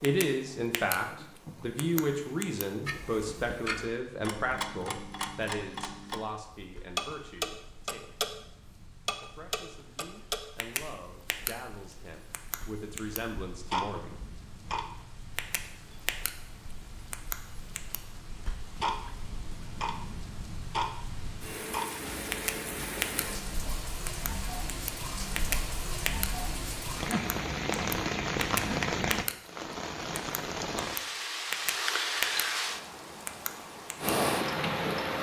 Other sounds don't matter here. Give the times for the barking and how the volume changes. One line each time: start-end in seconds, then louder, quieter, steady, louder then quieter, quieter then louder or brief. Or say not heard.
not heard.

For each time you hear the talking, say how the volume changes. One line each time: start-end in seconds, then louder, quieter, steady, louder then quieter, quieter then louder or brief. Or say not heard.
0.0-8.1 quieter
9.2-14.2 louder.